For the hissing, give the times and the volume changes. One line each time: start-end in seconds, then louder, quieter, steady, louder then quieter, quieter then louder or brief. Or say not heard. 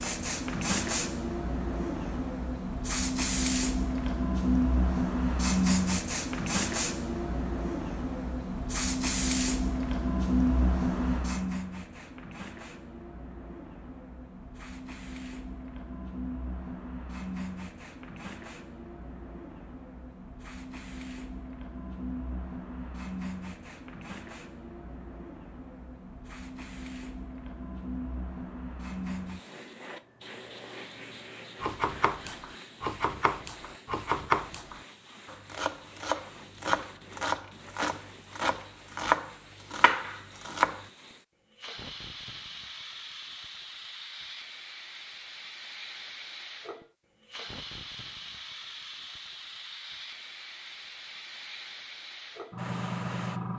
0.0-53.5 quieter then louder.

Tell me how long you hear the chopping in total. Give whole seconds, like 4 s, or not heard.
9 s.